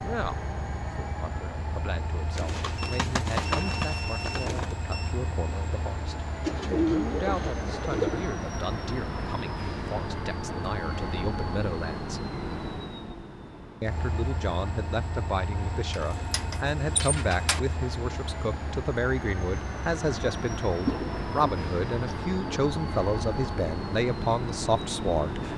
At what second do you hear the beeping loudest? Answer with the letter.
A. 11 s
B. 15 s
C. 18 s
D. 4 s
D.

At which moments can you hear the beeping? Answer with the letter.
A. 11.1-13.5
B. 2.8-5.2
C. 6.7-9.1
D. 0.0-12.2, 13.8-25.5
B.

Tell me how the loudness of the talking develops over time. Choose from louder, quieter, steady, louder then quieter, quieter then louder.
louder.